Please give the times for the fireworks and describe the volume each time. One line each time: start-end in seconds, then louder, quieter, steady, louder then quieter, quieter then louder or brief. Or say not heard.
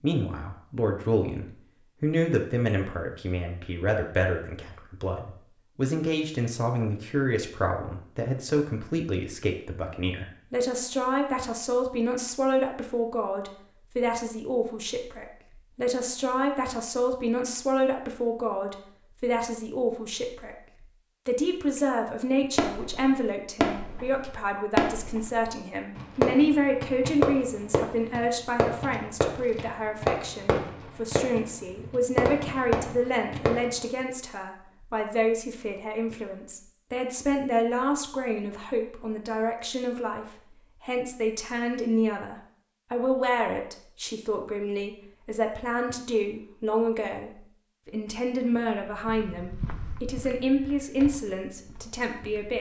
22.6-33.8 steady.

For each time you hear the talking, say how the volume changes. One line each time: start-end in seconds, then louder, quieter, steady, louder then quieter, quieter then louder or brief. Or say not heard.
0.0-52.5 steady.